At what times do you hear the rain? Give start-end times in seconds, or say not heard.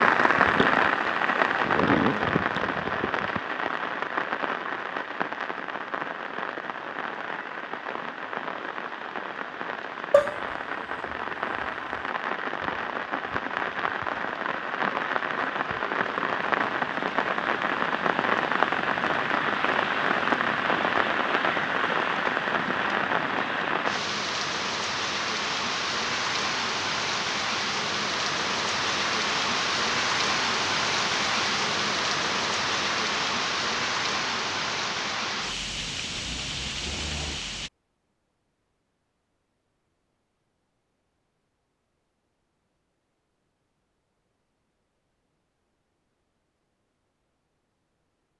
0.0-37.7.